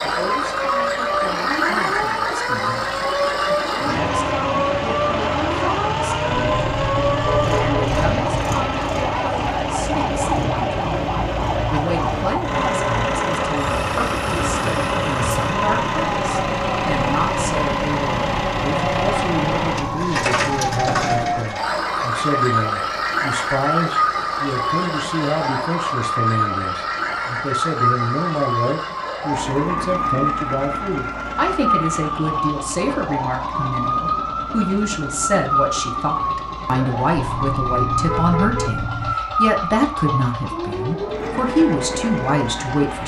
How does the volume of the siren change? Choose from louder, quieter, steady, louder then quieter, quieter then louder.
steady.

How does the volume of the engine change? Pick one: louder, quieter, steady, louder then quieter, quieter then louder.
quieter.